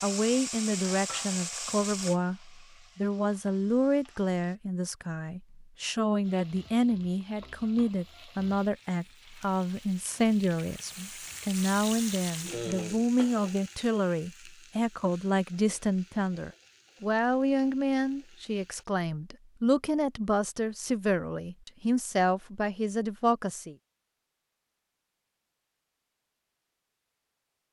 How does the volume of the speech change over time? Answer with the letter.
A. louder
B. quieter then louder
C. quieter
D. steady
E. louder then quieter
D.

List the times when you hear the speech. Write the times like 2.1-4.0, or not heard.
0.0-23.8.